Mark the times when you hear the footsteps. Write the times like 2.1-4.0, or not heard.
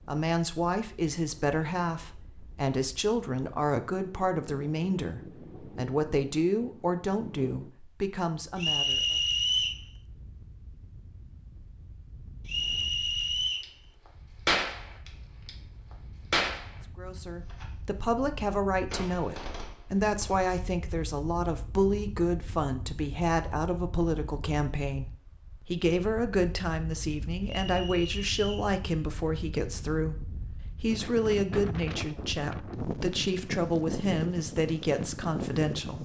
not heard.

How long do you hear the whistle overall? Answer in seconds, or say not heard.
4 s.